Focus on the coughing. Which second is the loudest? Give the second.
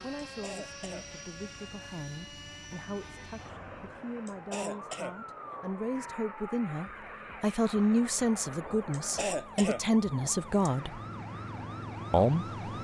9 s.